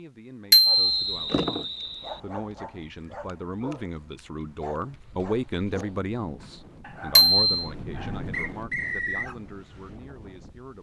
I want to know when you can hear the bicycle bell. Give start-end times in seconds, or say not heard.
0.5-1.1, 7.2-7.7.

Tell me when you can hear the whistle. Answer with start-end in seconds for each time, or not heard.
0.7-2.2, 8.3-9.3.